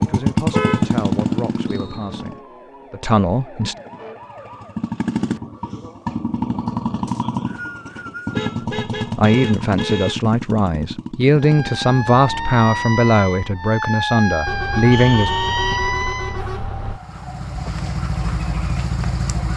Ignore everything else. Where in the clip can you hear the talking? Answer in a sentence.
You can hear the talking from 0.0 to 3.8 s and from 9.2 to 15.3 s.